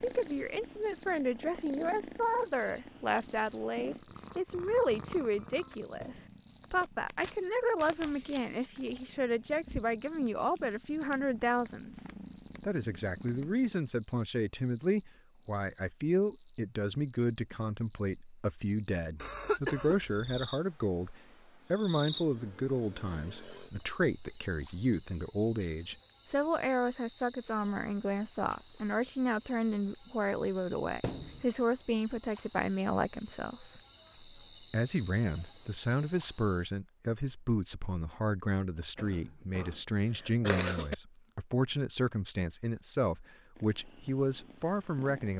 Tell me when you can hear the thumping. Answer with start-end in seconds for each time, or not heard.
6.0-6.4, 31.0-31.5.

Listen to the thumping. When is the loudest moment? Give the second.
31 s.